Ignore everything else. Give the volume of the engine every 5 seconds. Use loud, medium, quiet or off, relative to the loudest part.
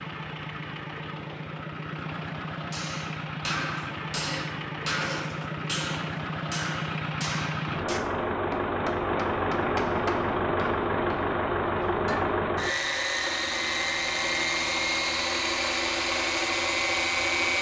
medium, loud, loud, loud.